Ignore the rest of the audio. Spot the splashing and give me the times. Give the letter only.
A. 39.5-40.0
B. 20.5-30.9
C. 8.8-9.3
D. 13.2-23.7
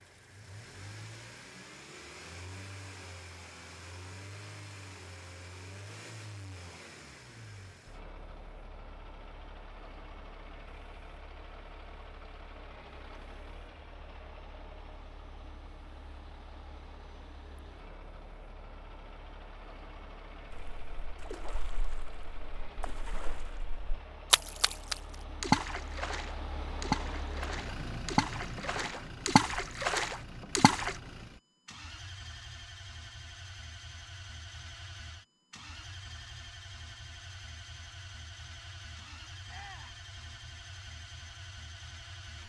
B.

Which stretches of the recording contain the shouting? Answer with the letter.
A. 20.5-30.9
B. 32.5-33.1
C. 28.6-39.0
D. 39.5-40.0
D.